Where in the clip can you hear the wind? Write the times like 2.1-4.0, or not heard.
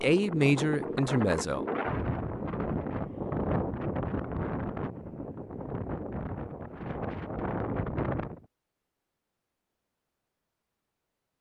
0.0-8.4.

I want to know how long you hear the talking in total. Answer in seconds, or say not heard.
2 s.